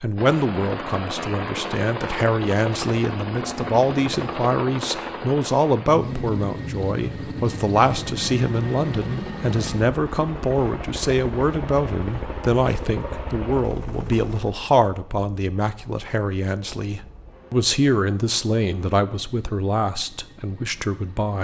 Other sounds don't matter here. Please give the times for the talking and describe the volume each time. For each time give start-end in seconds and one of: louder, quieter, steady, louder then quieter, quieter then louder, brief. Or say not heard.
0.0-21.3 steady.